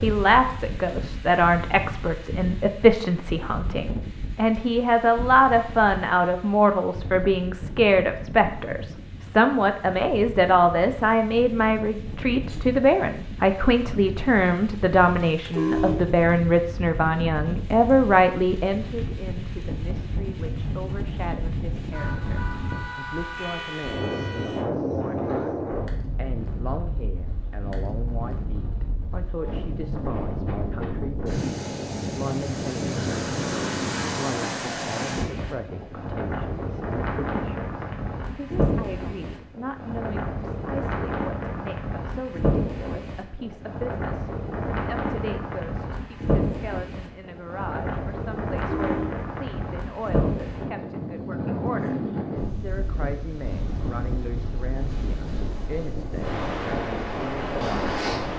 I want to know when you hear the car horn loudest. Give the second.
16 s.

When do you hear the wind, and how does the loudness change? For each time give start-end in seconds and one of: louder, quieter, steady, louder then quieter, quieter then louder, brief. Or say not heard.
0.0-58.3 louder.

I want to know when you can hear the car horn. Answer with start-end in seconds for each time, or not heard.
15.2-16.1, 21.9-24.6, 48.5-49.2.